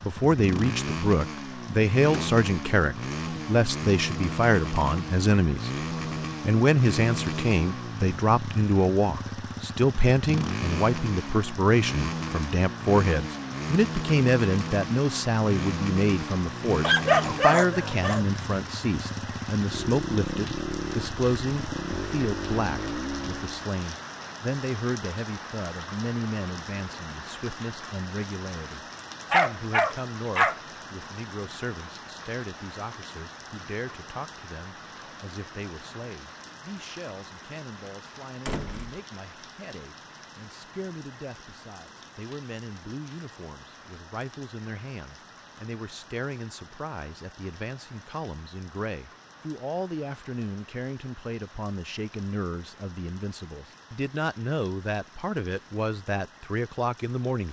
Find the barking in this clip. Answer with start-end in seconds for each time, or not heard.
16.8-18.2, 29.3-30.6.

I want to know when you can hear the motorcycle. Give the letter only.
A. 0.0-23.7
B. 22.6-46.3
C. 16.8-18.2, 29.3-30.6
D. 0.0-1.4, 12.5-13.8
A.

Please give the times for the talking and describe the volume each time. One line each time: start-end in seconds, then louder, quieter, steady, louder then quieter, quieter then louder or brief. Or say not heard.
0.0-57.4 quieter then louder.